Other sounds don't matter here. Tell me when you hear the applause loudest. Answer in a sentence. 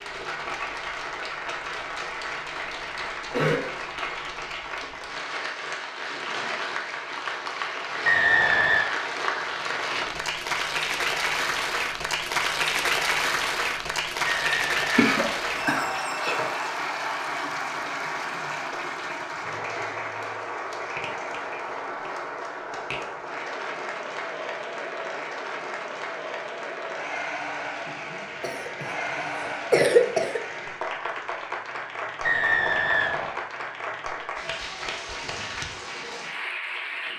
The volume of the applause peaks at 13 seconds.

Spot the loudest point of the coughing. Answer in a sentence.
The volume of the coughing peaks at 30 seconds.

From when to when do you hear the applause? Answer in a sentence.
You can hear the applause from 0.0 to 37.1 s.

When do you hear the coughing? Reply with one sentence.
The coughing can be heard from 3.3 to 3.7 s, from 14.9 to 16.4 s and from 28.4 to 30.4 s.